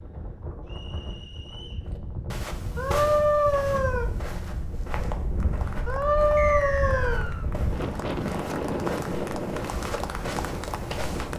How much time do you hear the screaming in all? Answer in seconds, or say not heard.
3 s.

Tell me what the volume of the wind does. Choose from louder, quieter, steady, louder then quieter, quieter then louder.
louder.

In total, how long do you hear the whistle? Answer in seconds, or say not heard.
2 s.